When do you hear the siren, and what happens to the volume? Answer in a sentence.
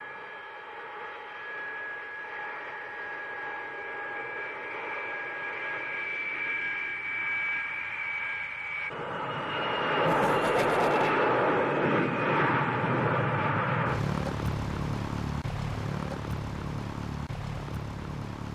You can't hear the siren here.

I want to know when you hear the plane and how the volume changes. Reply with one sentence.
The plane can be heard from 0.0 to 18.5 s, getting louder then quieter.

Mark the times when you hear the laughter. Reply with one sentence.
You can hear the laughter from 10.1 to 11.2 s.